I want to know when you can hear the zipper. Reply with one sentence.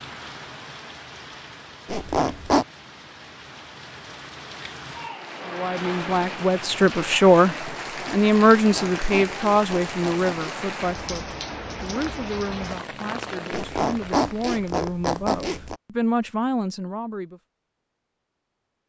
The zipper can be heard from 1.9 to 2.6 s, from 8.6 to 10.6 s and from 13.5 to 15.8 s.